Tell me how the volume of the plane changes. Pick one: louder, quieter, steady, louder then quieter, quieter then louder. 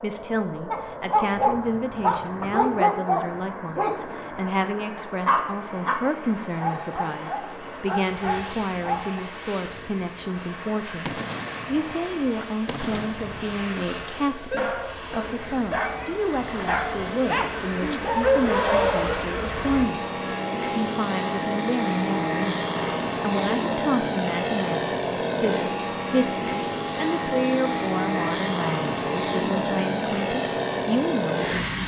louder.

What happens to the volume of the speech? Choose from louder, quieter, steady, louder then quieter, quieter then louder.
steady.